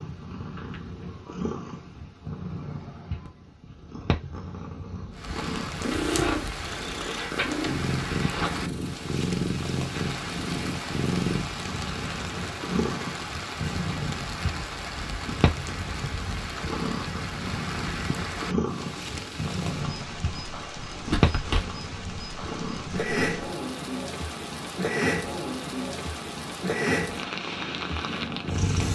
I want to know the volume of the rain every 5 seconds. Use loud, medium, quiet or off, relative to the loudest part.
off, loud, loud, loud, loud, loud.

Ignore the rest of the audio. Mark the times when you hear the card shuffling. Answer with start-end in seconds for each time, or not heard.
5.9-8.6, 21.1-21.7.